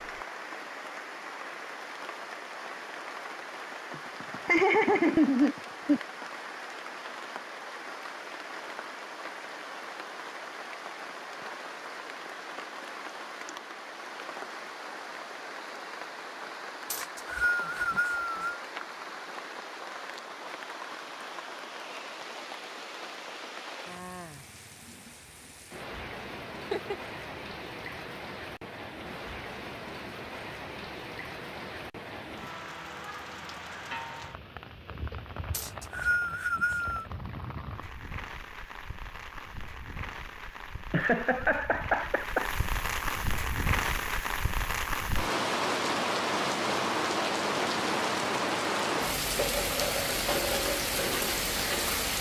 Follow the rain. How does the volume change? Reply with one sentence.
The volume of the rain goes up.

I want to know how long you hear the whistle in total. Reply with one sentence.
You can hear the whistle for 3 seconds altogether.